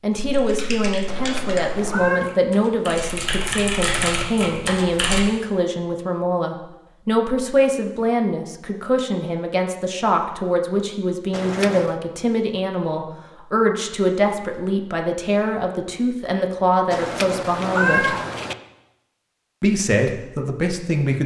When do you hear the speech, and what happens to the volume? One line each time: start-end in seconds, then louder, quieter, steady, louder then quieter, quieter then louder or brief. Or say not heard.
0.0-18.1 steady
19.6-21.2 brief.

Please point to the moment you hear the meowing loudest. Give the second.
18 s.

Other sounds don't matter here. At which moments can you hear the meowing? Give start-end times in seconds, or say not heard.
1.1-2.3, 11.3-11.9, 16.9-18.6.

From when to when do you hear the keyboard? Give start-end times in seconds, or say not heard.
0.2-5.2.